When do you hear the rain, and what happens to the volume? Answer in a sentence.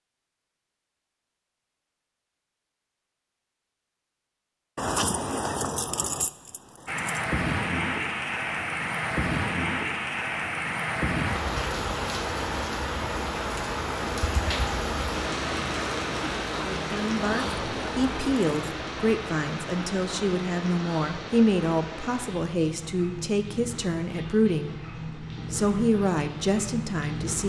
The rain can be heard from 6.8 to 27.4 s, getting quieter.